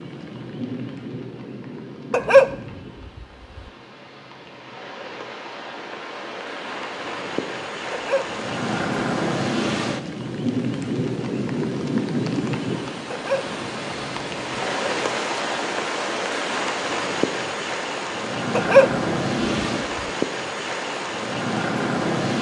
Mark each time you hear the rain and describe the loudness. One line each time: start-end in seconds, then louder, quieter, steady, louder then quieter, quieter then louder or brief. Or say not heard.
0.0-22.3 louder.